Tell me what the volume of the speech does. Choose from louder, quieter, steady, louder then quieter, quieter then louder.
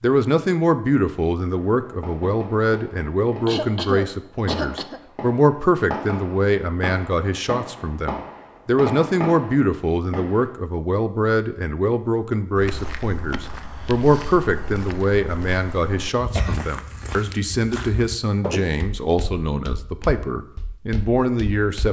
steady.